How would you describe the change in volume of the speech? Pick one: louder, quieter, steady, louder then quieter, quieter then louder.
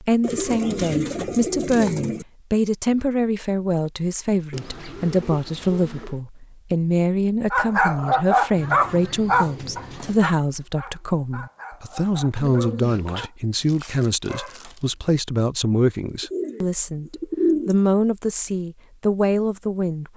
steady.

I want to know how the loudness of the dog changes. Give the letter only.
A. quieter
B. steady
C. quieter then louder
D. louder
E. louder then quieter
A.